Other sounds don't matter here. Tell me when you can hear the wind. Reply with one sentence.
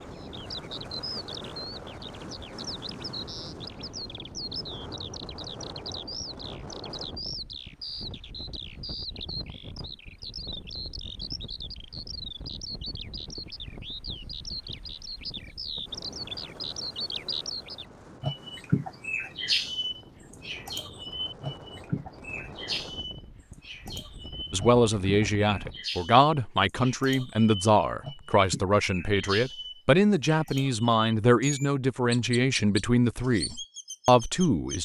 The wind can be heard from 0.0 to 25.9 s.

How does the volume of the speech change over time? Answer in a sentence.
The volume of the speech stays about the same.